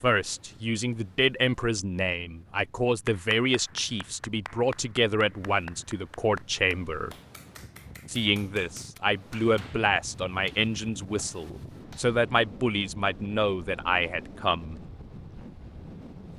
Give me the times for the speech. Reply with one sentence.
You can hear the speech from 0.0 to 7.2 s and from 8.1 to 14.8 s.